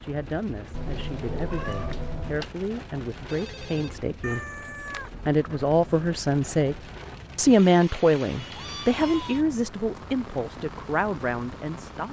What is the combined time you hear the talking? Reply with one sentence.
The talking can be heard for 11 seconds in total.